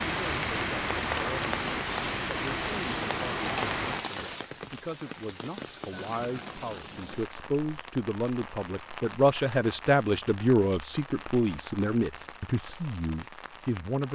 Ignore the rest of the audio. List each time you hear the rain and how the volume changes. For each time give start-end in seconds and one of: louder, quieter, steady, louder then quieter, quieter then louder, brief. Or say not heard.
0.0-14.0 quieter.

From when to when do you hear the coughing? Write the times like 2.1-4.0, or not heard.
3.5-4.0.